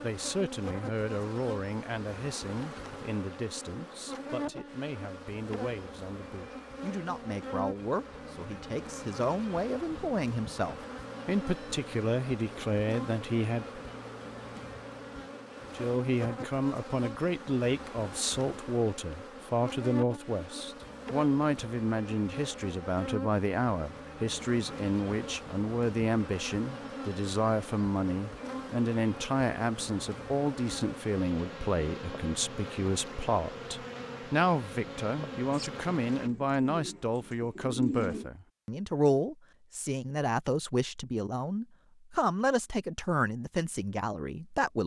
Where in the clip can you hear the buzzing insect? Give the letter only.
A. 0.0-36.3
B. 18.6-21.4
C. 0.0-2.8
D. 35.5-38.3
A.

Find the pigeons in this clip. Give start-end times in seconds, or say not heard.
35.5-38.3.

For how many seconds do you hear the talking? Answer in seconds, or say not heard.
43 s.